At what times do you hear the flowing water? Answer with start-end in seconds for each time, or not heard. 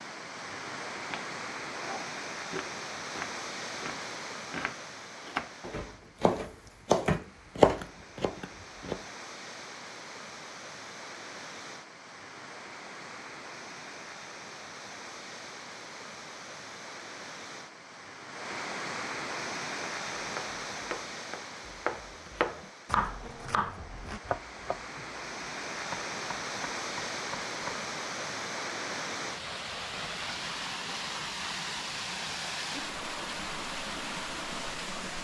0.0-35.1.